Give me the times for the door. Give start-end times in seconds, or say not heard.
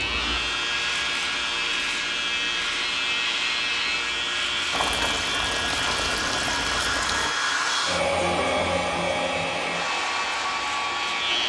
not heard.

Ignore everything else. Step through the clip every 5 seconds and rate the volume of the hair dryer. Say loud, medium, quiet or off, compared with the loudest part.
medium, loud, loud.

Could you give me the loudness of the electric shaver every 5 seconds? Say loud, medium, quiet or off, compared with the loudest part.
loud, medium, loud.